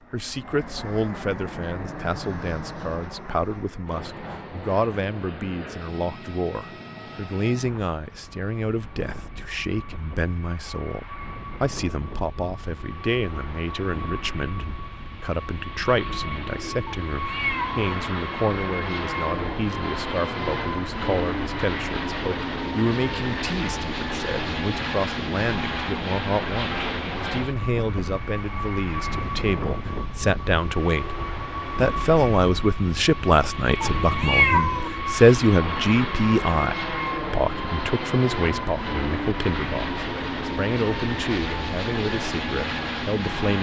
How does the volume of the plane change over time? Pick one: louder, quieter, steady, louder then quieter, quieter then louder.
louder.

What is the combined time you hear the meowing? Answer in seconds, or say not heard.
2 s.